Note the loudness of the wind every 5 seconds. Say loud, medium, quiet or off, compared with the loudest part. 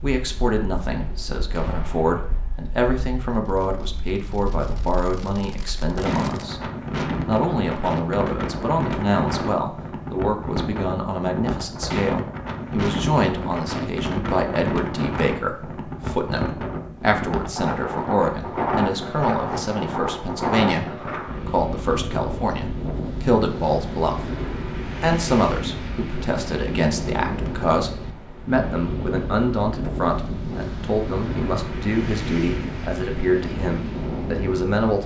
quiet, loud, loud, loud, loud, loud, loud.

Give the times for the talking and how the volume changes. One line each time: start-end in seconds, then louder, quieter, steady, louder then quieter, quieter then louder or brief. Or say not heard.
0.0-35.0 steady.